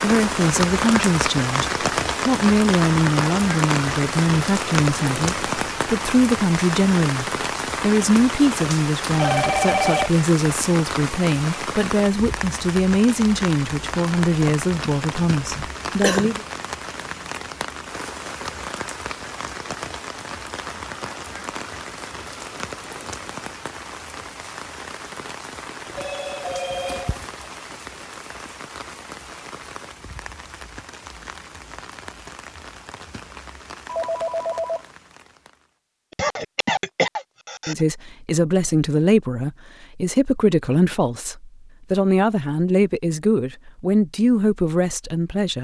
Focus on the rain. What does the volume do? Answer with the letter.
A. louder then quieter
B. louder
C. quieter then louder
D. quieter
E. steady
D.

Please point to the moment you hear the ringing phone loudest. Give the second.
10 s.